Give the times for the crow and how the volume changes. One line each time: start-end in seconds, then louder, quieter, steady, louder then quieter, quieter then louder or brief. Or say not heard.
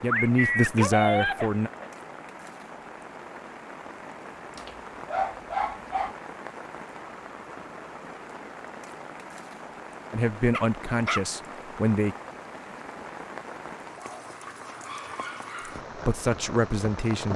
not heard.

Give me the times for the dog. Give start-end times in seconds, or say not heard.
0.1-1.9, 4.5-6.2, 10.5-11.2, 14.0-15.8.